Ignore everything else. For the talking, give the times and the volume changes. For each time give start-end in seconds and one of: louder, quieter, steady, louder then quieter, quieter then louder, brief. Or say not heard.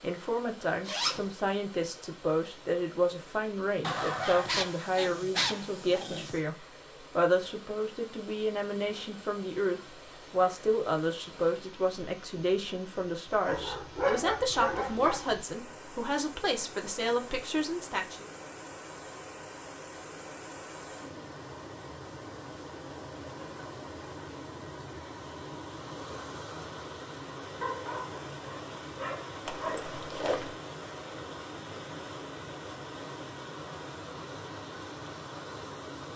0.0-18.2 steady.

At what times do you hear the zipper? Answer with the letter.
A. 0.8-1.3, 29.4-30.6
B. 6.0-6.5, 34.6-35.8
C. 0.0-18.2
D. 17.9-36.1
A.